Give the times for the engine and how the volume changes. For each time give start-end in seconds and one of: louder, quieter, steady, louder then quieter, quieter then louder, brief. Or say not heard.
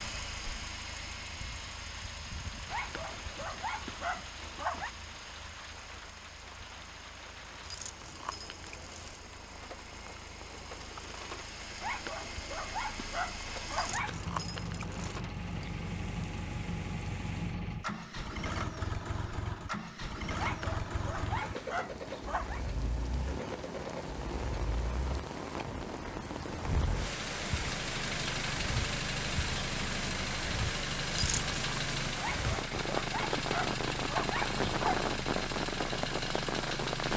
0.0-37.1 louder.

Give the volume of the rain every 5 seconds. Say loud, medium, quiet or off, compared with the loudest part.
quiet, quiet, quiet, quiet, medium, loud, loud, loud.